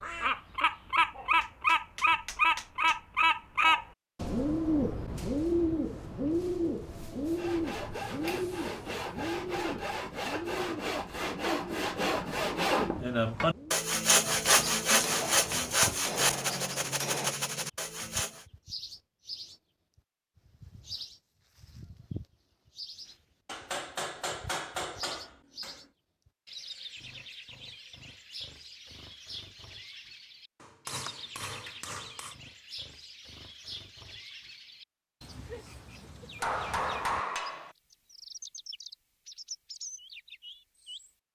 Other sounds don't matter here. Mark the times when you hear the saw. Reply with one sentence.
You can hear the saw from 7.2 to 18.4 s.